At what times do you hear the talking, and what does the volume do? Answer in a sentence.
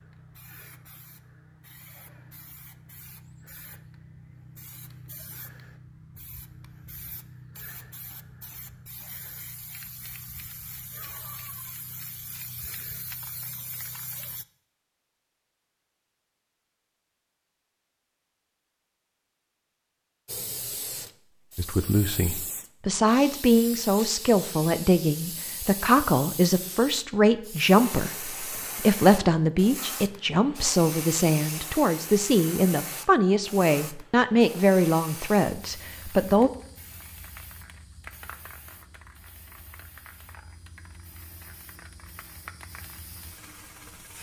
You can hear the talking from 21.6 to 36.5 s, at a steady volume.